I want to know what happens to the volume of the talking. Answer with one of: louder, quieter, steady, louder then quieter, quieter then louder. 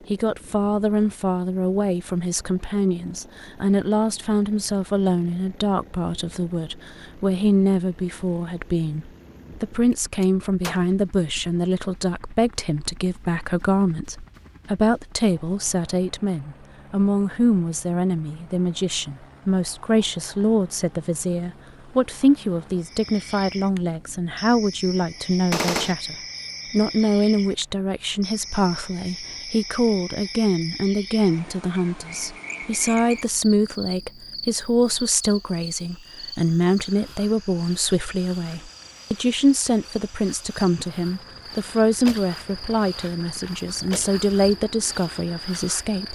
steady.